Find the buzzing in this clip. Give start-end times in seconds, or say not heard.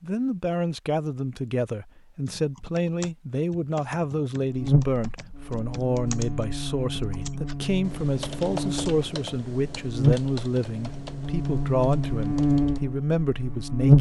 4.5-13.9.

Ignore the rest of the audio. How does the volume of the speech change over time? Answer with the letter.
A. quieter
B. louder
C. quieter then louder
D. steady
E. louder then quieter
D.